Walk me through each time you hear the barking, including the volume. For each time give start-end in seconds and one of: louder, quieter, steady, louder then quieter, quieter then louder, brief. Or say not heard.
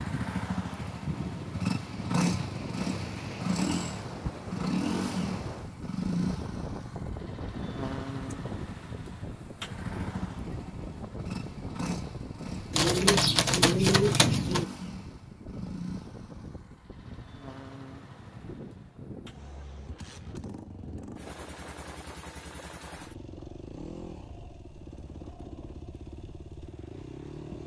not heard.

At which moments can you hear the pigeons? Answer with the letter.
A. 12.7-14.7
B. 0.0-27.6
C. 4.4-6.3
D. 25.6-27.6
A.